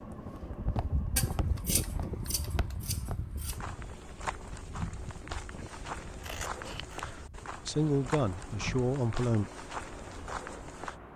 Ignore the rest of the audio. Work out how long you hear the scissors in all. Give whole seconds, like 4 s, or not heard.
3 s.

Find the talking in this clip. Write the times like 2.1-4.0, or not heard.
7.7-9.4.